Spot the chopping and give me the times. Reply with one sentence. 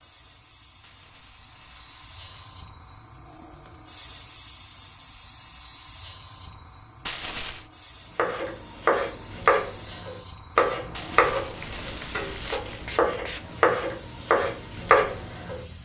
You can hear the chopping from 8.2 to 15.6 s.